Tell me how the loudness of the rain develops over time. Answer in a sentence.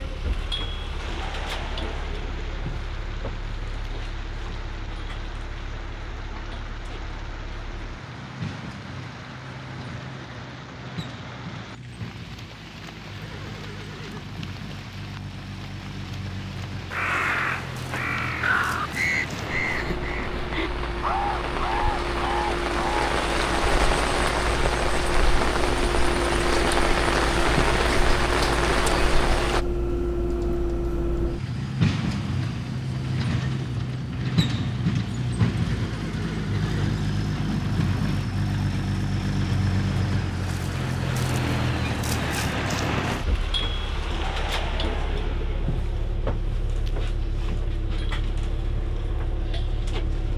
The volume of the rain goes up.